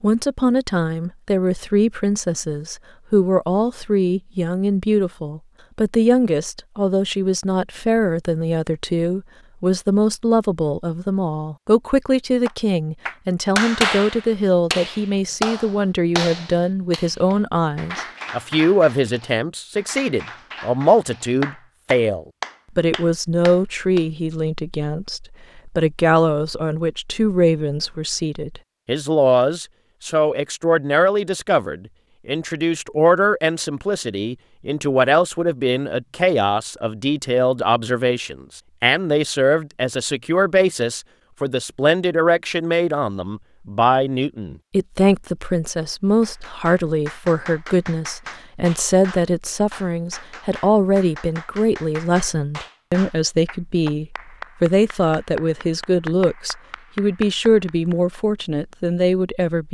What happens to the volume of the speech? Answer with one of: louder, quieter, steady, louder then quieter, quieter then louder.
steady.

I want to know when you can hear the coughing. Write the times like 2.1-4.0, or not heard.
not heard.